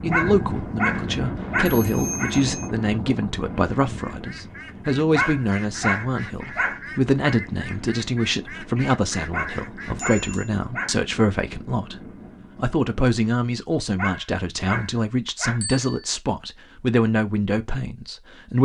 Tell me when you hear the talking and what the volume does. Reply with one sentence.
You can hear the talking from 0.0 to 18.6 s, at a steady volume.